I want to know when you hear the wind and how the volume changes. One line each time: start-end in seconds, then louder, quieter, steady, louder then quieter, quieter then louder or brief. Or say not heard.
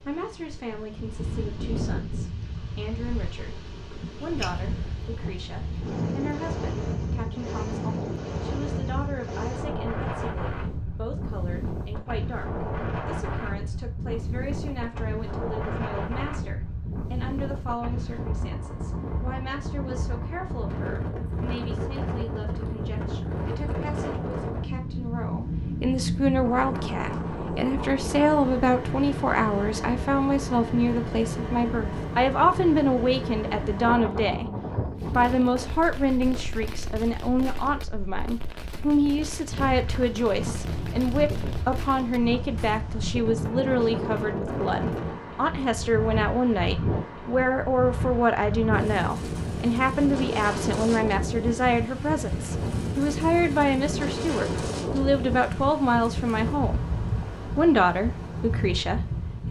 0.0-59.4 steady.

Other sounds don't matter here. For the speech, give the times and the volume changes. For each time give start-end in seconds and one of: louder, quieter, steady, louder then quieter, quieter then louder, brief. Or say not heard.
0.1-34.5 louder
35.1-56.9 steady
57.5-59.4 brief.